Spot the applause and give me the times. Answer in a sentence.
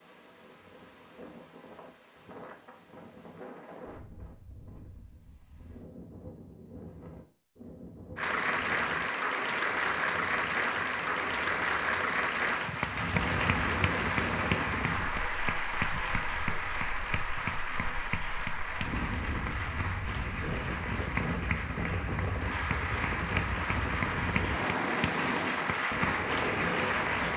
The applause can be heard from 8.2 to 27.3 s.